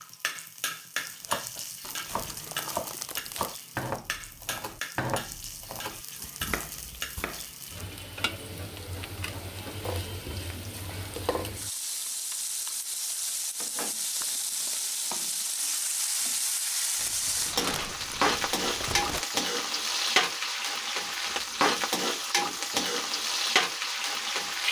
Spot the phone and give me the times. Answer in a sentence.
The phone can't be heard in this clip.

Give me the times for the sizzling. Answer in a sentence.
You can hear the sizzling from 0.0 to 24.6 s.